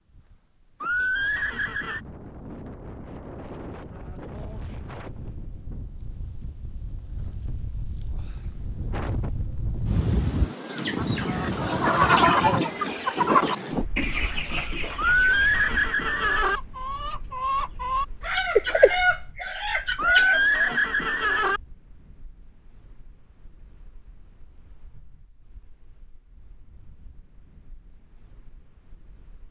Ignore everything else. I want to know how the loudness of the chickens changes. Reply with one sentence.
The volume of the chickens goes down, then up.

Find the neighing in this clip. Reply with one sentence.
The neighing can be heard from 0.8 to 2.0 s, from 14.9 to 16.6 s and from 19.9 to 21.6 s.